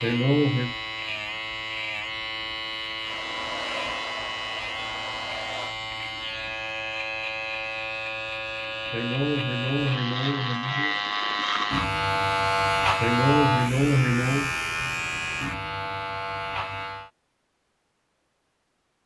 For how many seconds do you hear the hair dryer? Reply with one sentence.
The hair dryer can be heard for 3 seconds in total.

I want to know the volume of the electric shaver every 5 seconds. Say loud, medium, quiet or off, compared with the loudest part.
medium, medium, loud, medium.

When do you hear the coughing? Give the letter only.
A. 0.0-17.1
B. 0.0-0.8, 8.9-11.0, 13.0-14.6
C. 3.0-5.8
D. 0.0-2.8
B.